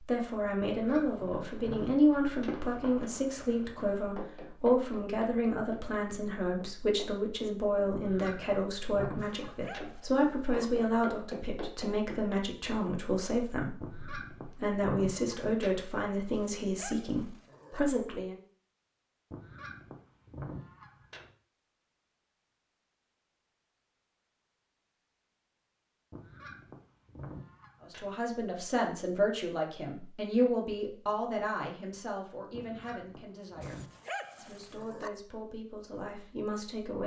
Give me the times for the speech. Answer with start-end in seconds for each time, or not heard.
0.0-18.4, 27.9-37.0.